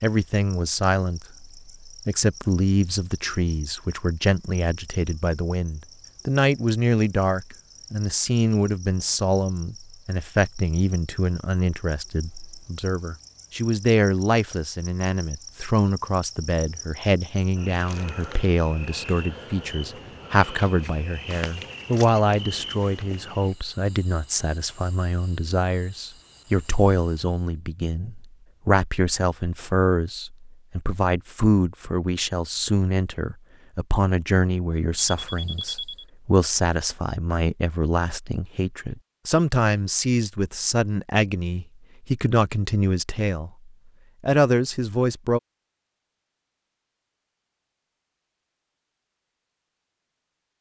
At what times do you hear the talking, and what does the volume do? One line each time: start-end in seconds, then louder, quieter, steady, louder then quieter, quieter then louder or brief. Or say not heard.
0.0-45.4 steady.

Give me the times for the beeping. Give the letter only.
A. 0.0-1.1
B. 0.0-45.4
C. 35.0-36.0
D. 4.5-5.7
C.